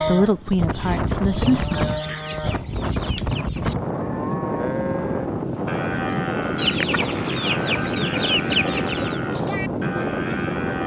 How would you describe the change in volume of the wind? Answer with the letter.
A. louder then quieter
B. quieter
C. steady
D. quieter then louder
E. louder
C.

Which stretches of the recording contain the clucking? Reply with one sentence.
You can hear the clucking from 1.4 to 3.8 s and from 6.5 to 9.2 s.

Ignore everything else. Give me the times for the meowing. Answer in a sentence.
You can't hear the meowing here.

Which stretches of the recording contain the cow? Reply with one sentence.
You can hear the cow from 0.0 to 10.8 s.